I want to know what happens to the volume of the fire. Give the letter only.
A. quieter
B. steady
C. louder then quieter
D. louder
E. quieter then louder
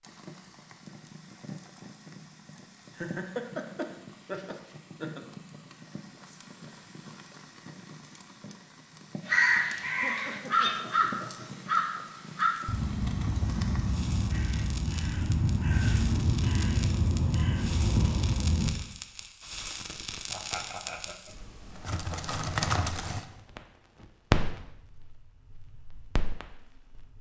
D.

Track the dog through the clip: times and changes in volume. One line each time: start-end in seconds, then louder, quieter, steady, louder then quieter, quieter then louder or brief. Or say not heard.
not heard.